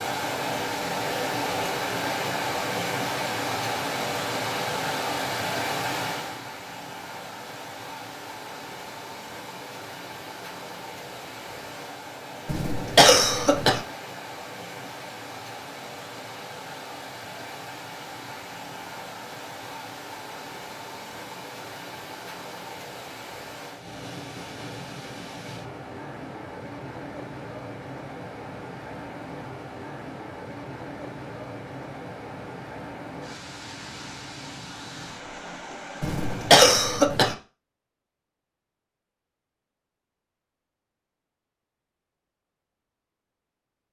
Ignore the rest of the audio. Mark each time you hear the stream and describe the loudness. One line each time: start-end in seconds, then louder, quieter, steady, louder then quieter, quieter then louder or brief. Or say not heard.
0.0-36.7 quieter.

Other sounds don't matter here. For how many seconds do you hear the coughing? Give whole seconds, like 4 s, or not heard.
3 s.